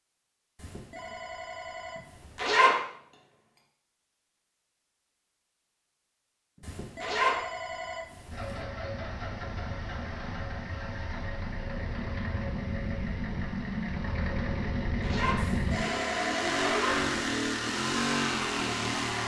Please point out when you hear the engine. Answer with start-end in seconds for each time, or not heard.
8.3-19.2.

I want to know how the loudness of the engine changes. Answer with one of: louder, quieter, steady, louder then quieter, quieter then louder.
louder.